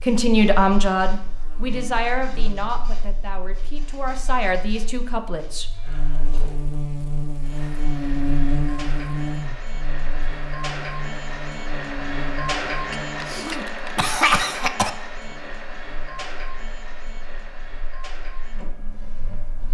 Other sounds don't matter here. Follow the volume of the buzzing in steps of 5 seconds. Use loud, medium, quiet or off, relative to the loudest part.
quiet, loud, medium, quiet.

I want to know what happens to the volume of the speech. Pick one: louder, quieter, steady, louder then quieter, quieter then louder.
quieter then louder.